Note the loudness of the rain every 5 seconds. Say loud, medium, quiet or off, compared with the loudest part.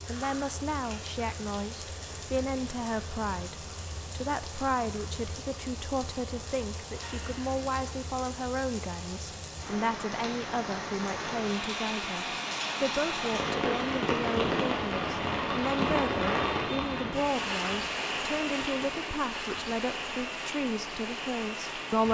medium, medium, loud, loud, medium.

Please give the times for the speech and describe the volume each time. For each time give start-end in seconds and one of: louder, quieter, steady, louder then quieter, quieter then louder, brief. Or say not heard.
0.1-22.0 steady.